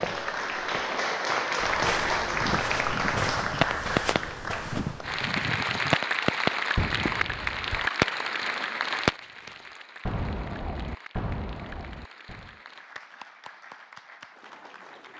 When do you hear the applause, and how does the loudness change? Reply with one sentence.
The applause can be heard from 0.0 to 15.1 s, getting quieter.